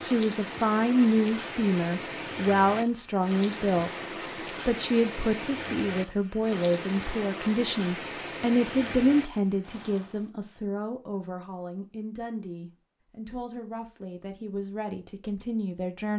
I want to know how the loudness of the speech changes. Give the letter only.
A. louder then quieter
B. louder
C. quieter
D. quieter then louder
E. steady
C.